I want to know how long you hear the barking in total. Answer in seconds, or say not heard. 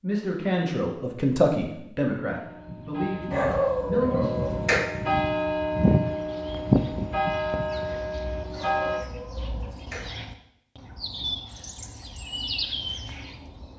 3 s.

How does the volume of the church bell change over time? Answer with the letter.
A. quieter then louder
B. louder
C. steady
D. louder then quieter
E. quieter
D.